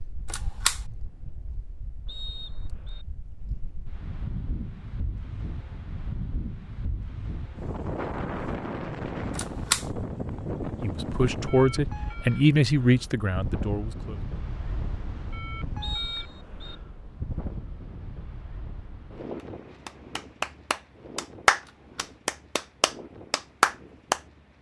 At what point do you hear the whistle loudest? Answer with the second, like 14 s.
16 s.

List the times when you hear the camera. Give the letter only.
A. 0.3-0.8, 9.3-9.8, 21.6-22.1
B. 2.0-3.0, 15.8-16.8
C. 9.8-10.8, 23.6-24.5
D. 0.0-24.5
A.